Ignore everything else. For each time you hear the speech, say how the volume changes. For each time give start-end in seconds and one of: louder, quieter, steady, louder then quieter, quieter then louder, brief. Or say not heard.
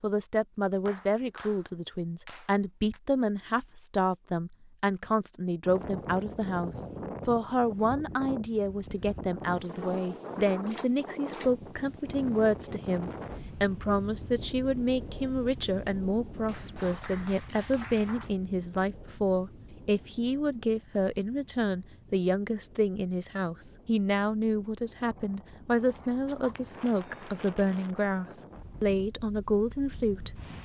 0.0-30.3 steady.